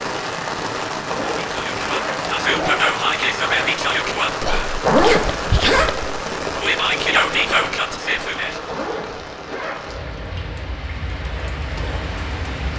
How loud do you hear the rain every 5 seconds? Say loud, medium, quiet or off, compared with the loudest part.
loud, loud, medium.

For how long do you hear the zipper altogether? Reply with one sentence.
You can hear the zipper for 4 seconds altogether.